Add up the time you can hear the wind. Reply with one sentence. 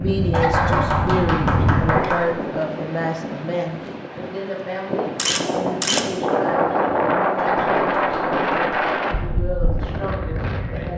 You can hear the wind for 11 seconds altogether.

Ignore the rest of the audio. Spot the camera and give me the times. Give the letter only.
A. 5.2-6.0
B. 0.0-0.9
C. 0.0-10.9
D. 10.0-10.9
A.